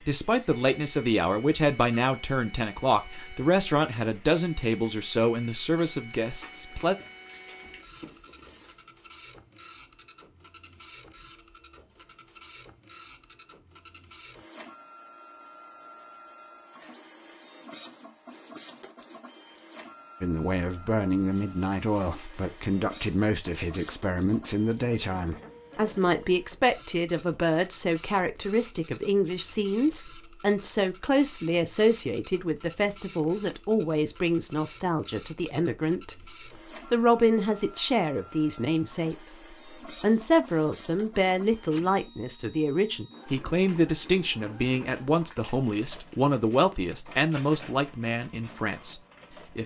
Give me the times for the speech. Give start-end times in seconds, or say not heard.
0.1-7.0, 20.2-36.1, 36.9-49.6.